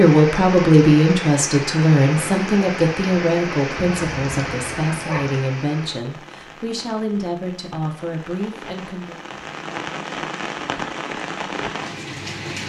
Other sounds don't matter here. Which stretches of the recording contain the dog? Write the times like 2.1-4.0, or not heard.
3.8-5.3.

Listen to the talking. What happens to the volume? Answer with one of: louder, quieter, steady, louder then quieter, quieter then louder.
quieter.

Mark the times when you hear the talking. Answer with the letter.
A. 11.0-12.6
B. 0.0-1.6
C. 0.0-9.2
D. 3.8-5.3
C.